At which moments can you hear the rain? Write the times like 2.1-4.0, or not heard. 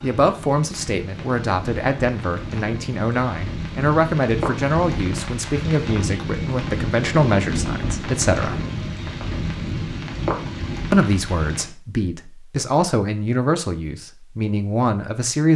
0.0-11.7.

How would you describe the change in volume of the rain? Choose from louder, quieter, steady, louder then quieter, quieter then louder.
louder.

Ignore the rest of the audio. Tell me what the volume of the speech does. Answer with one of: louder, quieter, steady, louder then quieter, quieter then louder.
steady.